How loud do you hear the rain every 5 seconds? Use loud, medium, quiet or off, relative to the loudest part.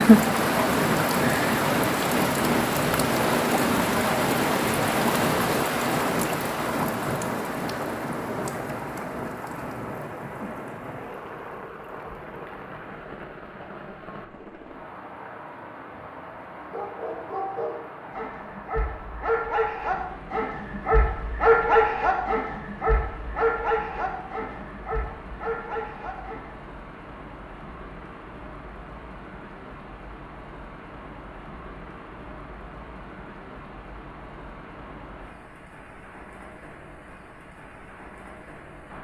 loud, medium, quiet, quiet, quiet, quiet, quiet, quiet.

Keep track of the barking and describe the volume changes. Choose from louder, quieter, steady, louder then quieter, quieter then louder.
louder then quieter.